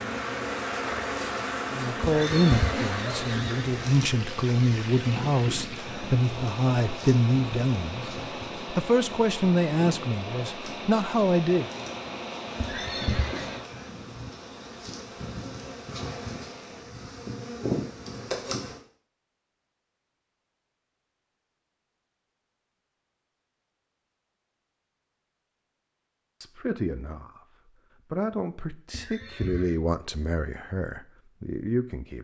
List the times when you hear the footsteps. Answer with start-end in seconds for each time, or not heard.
not heard.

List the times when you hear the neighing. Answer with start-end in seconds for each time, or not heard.
2.0-3.6, 12.6-13.7, 28.9-29.8.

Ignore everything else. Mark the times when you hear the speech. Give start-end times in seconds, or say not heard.
1.7-8.1, 8.7-11.7, 26.4-27.4, 28.1-32.2.